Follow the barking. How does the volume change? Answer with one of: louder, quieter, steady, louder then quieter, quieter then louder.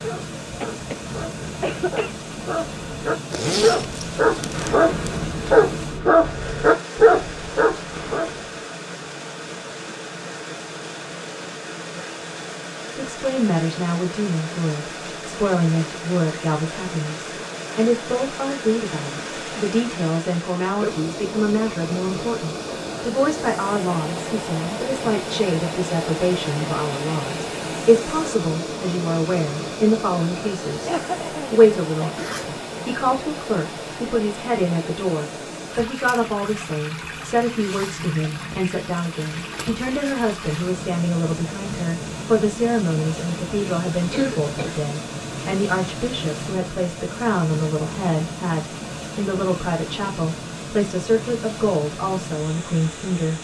louder.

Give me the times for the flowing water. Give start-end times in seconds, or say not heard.
0.0-53.3.